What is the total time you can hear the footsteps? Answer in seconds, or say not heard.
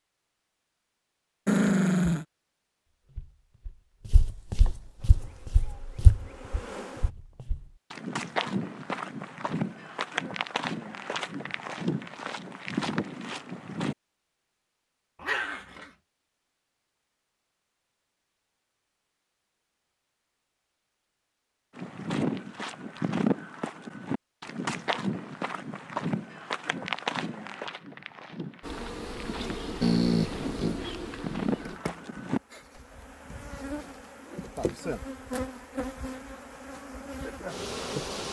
22 s.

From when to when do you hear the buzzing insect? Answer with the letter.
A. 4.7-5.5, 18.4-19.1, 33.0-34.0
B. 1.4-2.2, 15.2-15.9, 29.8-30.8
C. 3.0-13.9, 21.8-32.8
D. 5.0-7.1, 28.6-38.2
D.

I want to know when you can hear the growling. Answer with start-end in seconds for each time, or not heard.
1.4-2.2, 15.2-15.9, 29.8-30.8.